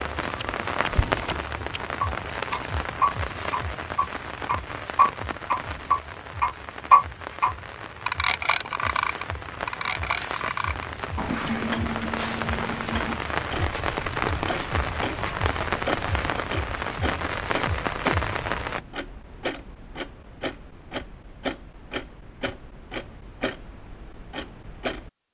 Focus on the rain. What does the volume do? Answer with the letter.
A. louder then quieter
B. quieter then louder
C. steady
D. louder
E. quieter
B.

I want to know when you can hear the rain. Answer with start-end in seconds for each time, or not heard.
0.0-18.8.